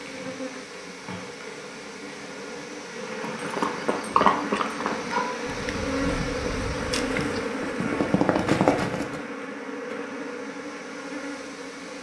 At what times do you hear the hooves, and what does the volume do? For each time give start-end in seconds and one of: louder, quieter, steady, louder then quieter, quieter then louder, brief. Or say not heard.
3.2-9.2 quieter then louder.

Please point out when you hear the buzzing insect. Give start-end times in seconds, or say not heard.
0.0-11.9.